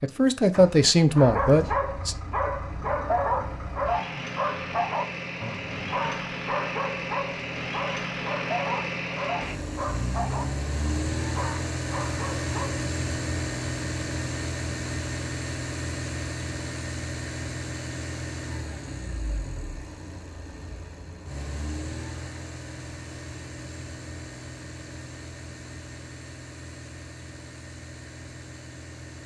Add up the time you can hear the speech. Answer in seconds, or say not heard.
2 s.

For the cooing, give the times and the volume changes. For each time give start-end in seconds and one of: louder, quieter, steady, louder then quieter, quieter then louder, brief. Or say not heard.
not heard.